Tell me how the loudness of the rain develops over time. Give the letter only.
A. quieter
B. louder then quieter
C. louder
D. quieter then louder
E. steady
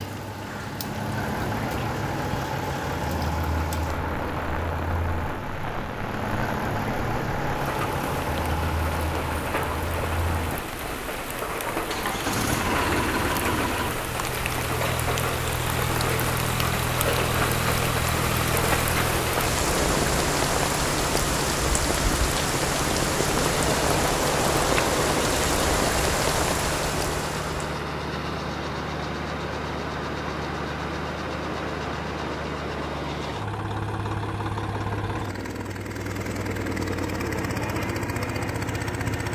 C.